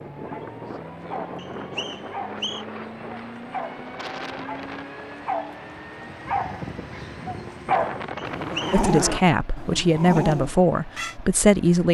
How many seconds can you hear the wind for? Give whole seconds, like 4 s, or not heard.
9 s.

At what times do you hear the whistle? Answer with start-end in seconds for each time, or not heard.
1.4-2.6, 8.2-8.8.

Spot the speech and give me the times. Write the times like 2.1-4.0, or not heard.
8.7-11.8.